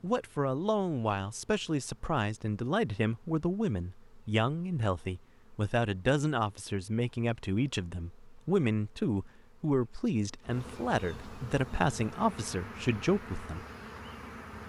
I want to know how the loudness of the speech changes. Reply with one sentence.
The loudness of the speech stays about the same.